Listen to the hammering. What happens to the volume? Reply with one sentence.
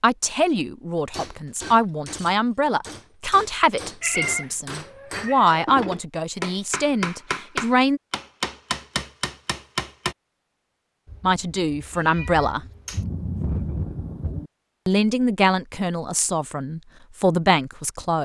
The loudness of the hammering goes up.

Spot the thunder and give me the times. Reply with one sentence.
You can hear the thunder from 12.9 to 14.5 s.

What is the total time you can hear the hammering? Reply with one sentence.
You can hear the hammering for 9 seconds altogether.